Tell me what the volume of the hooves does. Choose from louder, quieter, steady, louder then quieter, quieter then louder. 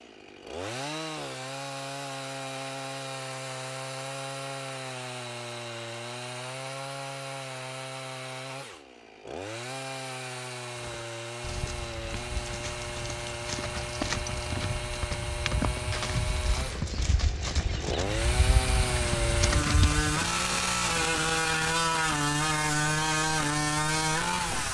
louder.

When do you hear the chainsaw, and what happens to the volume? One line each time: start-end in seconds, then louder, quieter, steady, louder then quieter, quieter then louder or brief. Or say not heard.
0.0-24.6 louder.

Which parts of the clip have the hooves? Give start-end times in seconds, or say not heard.
10.8-20.3.